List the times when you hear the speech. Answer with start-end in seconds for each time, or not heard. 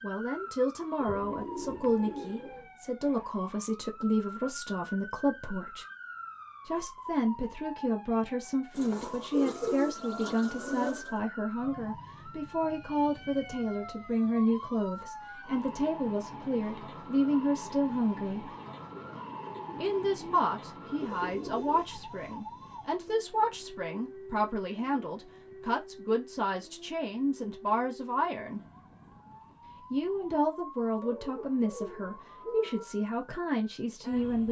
0.0-5.8, 6.7-18.6, 19.8-28.6, 29.9-34.4.